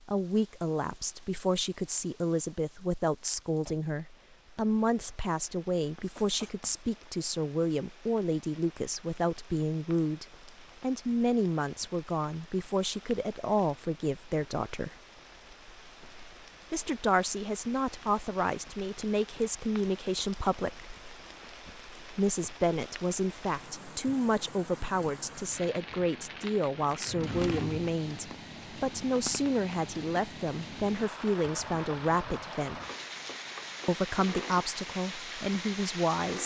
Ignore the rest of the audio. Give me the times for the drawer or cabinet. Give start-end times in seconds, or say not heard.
27.1-27.9.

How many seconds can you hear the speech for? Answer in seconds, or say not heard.
32 s.